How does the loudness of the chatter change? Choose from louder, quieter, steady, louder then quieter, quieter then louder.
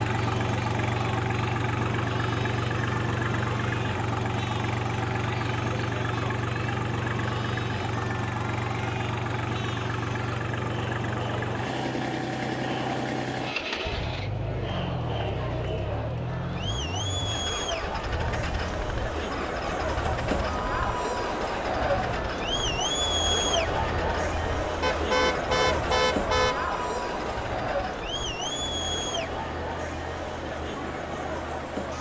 louder.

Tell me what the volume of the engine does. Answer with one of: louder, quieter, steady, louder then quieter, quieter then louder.
quieter.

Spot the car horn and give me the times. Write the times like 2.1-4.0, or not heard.
24.8-26.6.